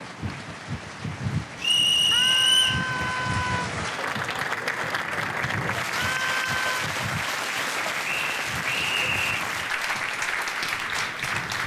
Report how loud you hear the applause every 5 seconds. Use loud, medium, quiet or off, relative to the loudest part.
medium, loud, loud.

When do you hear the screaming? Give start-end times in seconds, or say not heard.
2.1-3.7, 6.0-6.8.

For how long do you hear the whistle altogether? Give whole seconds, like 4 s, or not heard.
3 s.